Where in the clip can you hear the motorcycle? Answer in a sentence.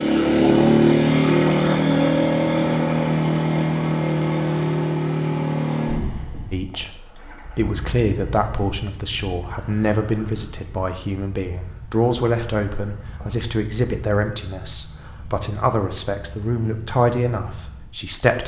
You can hear the motorcycle from 0.0 to 18.1 s.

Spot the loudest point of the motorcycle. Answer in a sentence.
The loudest moment of the motorcycle is at 1 second.